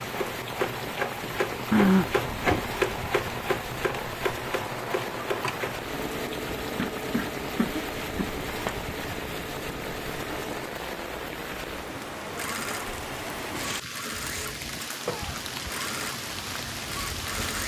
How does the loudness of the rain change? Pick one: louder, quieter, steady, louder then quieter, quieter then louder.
steady.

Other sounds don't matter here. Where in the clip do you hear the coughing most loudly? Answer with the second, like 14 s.
2 s.